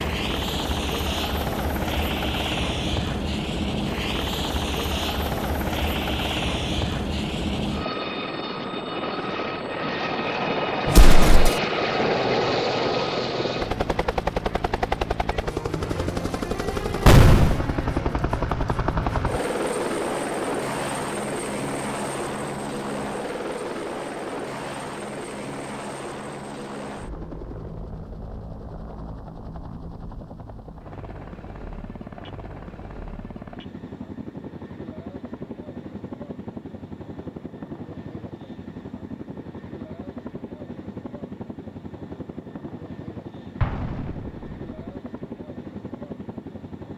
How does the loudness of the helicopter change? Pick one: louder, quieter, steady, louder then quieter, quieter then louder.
quieter.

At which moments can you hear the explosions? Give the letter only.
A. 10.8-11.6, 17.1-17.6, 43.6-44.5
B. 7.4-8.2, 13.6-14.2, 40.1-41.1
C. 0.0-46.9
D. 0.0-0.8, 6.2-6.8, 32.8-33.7
A.